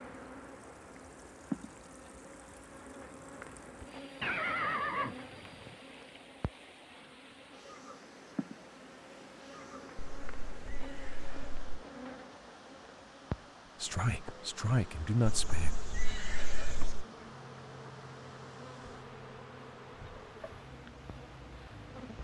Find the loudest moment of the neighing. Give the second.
5 s.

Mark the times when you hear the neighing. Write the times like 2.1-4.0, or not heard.
4.2-5.8, 9.9-11.7, 15.2-17.1.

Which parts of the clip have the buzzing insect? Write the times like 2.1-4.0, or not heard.
0.0-22.1.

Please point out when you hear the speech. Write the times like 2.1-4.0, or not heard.
13.8-15.8.